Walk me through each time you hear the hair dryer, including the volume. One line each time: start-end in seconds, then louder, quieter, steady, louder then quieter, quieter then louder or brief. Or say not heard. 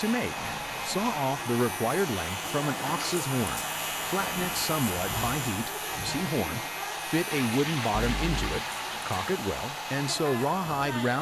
0.0-11.1 steady.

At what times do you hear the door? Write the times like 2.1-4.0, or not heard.
not heard.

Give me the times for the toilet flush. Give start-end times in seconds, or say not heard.
0.3-1.1, 7.3-9.3.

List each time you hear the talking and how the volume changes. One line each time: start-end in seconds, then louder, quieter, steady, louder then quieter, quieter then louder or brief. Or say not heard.
0.0-11.1 steady.